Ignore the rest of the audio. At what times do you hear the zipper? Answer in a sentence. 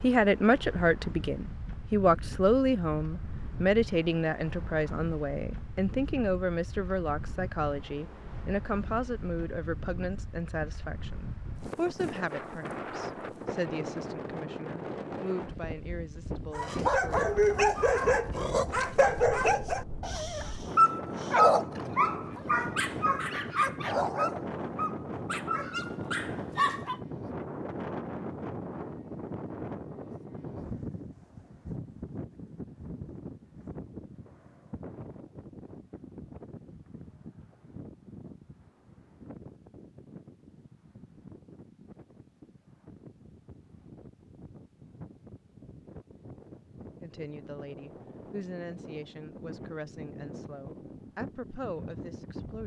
The zipper can't be heard in this clip.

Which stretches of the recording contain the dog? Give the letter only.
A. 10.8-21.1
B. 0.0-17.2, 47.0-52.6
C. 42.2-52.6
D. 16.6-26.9
D.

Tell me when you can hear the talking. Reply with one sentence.
You can hear the talking from 0.0 to 17.2 s and from 47.0 to 52.6 s.